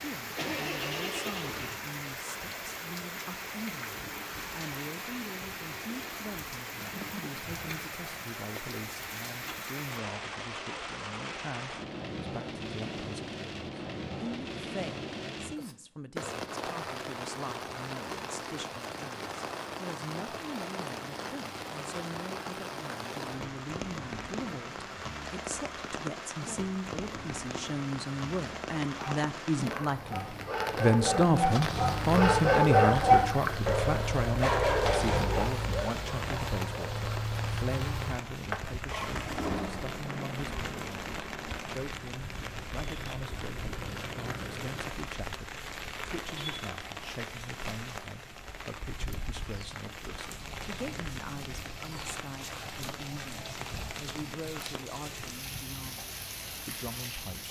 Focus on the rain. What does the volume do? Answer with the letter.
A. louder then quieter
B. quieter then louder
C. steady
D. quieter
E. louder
C.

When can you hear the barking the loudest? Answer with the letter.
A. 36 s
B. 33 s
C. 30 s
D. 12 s
B.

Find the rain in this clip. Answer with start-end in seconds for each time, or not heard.
0.0-57.4.